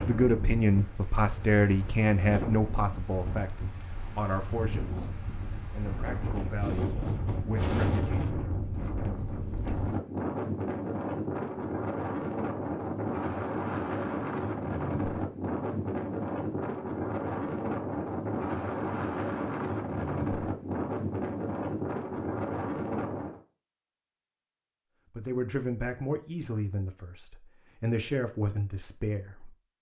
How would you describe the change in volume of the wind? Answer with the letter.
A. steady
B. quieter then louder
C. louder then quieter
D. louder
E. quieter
D.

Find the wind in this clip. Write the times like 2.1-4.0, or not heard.
0.0-23.4.